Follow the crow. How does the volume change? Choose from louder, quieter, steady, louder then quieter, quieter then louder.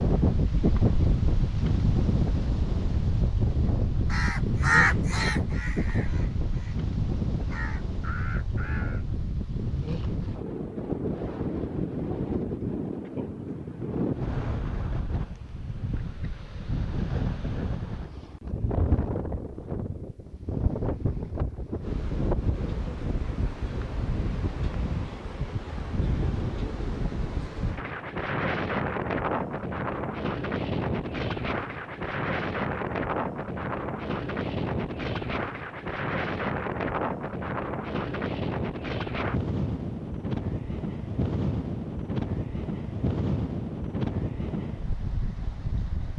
quieter then louder.